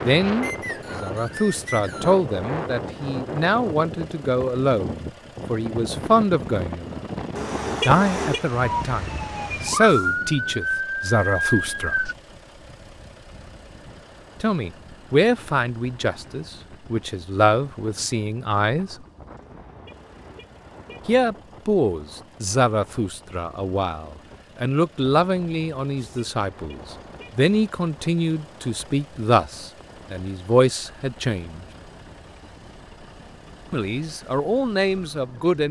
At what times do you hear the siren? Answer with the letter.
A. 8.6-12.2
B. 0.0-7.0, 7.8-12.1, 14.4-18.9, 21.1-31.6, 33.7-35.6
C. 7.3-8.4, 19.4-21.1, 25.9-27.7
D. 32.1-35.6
A.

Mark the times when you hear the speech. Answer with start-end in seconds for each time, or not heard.
0.0-7.0, 7.8-12.1, 14.4-18.9, 21.1-31.6, 33.7-35.6.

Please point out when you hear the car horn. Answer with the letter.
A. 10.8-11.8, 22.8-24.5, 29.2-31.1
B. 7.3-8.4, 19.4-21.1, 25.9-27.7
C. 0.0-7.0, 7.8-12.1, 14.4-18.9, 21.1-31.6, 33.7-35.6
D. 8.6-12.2
B.